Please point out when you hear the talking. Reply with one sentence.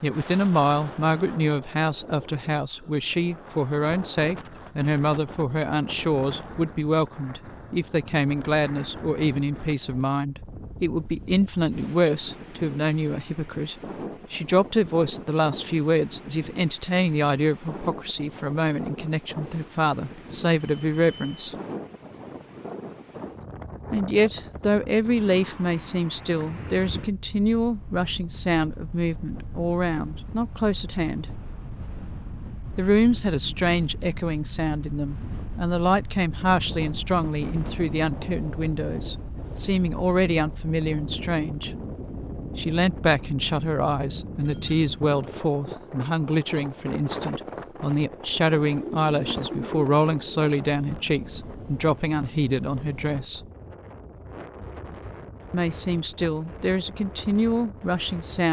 The talking can be heard from 0.0 to 21.6 s, from 23.9 to 31.2 s, from 32.8 to 41.7 s, from 42.5 to 53.5 s and from 55.5 to 58.4 s.